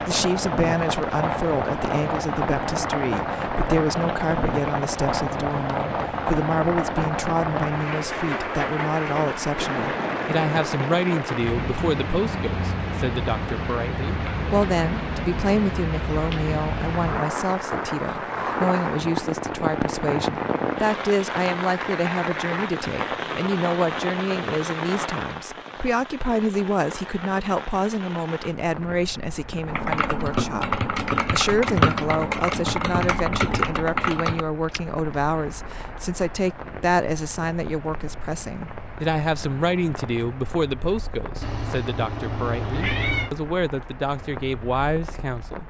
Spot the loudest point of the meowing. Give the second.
43 s.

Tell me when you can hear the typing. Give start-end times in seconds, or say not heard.
29.6-34.8.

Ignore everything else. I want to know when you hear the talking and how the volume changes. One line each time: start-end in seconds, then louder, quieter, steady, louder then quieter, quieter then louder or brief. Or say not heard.
0.0-45.6 steady.